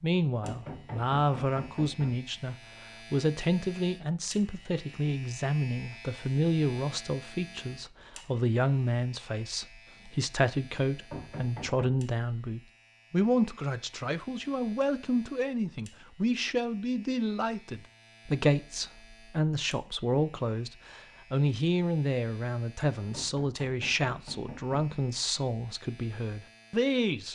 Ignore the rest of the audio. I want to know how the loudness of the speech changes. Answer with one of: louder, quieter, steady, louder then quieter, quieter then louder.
steady.